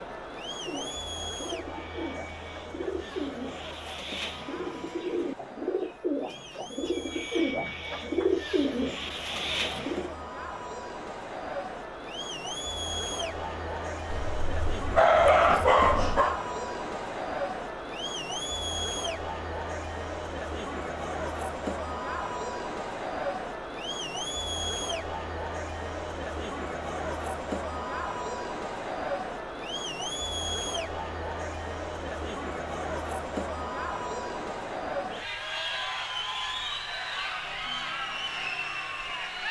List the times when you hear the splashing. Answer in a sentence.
The splashing can't be heard in this clip.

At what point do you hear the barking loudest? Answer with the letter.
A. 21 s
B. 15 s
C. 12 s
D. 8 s
B.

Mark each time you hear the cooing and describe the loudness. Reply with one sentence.
The cooing can be heard from 0.7 to 10.2 s, getting louder.